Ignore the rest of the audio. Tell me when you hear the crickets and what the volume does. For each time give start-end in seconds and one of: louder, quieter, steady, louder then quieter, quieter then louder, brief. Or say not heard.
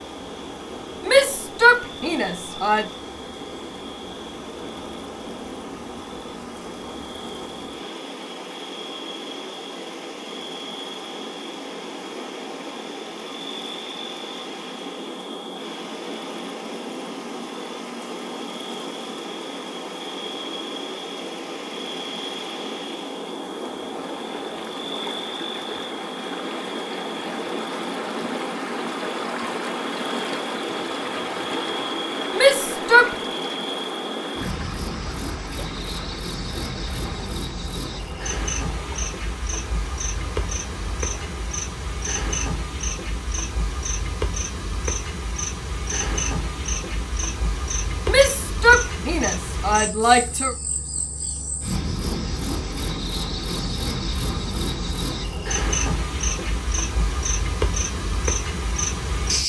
0.0-59.4 louder.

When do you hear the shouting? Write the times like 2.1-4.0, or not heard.
1.1-2.9, 32.4-33.1, 48.0-50.5.